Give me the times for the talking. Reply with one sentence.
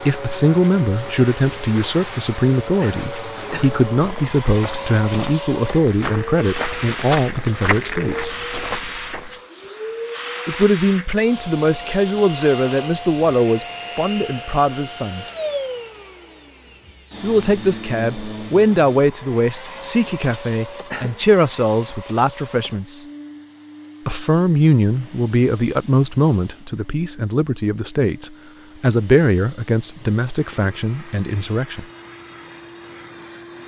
The talking can be heard from 0.0 to 8.4 s, from 10.4 to 15.2 s, from 17.2 to 23.1 s and from 24.1 to 31.9 s.